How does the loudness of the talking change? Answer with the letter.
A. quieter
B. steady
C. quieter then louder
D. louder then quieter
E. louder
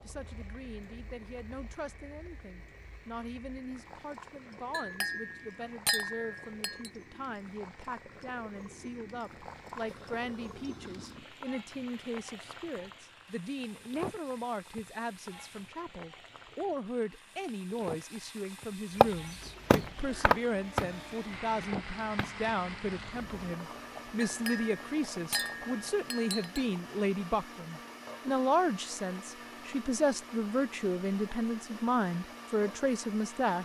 E.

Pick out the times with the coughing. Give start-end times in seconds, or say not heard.
not heard.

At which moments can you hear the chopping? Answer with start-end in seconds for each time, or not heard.
19.0-23.5.